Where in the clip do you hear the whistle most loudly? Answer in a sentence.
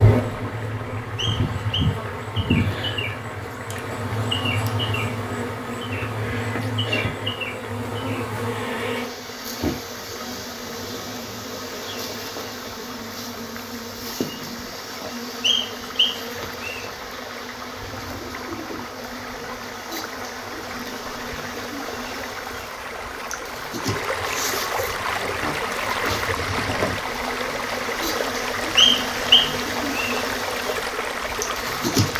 The volume of the whistle peaks at 29 seconds.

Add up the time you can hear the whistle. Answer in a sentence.
You can hear the whistle for 4 seconds altogether.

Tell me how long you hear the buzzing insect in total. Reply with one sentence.
You can hear the buzzing insect for 32 seconds altogether.